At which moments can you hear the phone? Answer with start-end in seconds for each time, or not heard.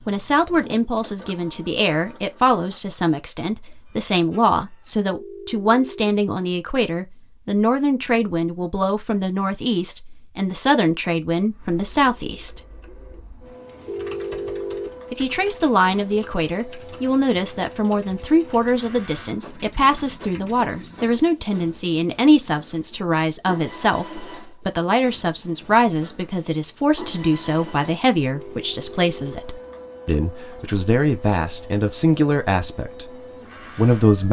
5.0-6.1, 13.8-14.9, 28.3-29.4.